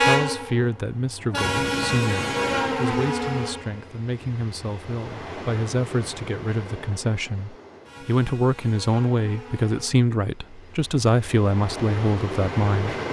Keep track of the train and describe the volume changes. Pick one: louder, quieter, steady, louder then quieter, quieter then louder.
quieter then louder.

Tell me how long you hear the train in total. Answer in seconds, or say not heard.
13 s.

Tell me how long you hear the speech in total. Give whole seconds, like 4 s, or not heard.
13 s.